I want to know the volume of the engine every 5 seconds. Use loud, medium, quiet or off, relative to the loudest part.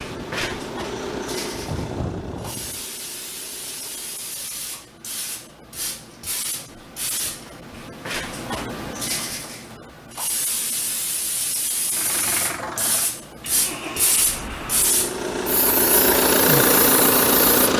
quiet, off, quiet, loud.